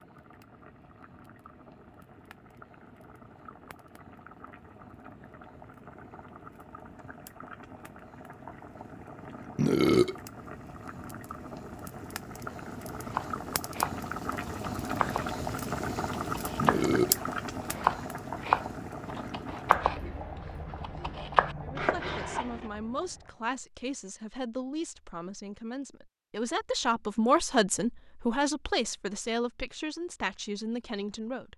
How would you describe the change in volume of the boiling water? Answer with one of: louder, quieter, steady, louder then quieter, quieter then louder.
louder then quieter.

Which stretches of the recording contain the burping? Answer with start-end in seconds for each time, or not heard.
9.6-10.2, 16.6-17.2.